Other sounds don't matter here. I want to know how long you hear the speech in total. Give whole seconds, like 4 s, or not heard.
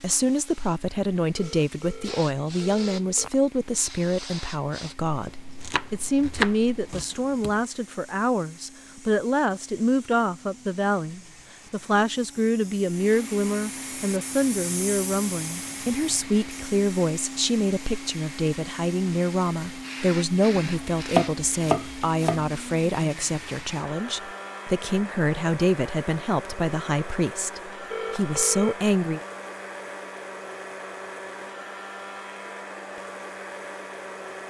29 s.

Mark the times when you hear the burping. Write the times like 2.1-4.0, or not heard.
not heard.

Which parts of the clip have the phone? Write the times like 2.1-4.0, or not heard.
1.4-3.4, 27.9-28.8.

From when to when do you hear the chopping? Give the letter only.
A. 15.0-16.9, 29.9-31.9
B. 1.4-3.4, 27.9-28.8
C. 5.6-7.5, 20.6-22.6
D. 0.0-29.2
C.